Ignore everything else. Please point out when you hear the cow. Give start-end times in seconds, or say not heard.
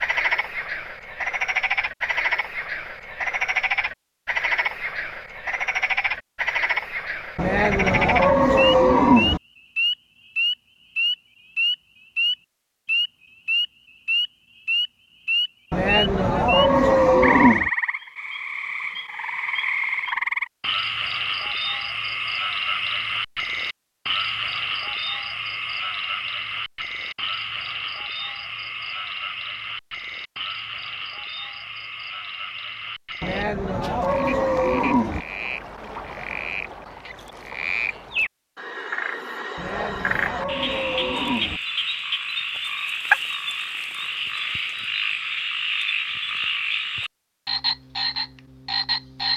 7.3-9.4, 15.7-17.7, 33.2-35.2, 39.5-41.6.